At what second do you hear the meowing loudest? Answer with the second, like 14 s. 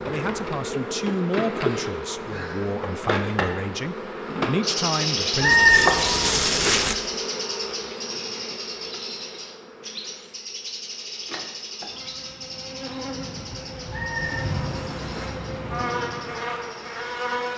6 s.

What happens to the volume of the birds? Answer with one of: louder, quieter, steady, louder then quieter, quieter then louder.
quieter.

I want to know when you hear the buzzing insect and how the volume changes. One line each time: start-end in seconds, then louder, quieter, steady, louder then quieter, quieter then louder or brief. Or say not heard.
0.0-17.5 quieter then louder.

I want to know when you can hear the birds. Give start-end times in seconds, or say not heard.
4.6-17.5.